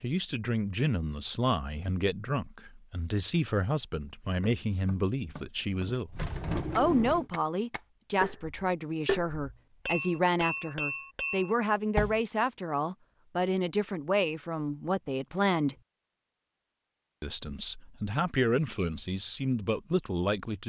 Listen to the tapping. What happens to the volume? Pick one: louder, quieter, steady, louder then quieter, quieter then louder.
louder.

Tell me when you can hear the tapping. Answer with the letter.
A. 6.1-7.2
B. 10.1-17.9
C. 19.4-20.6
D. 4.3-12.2
D.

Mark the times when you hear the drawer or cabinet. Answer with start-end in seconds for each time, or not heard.
6.1-7.2.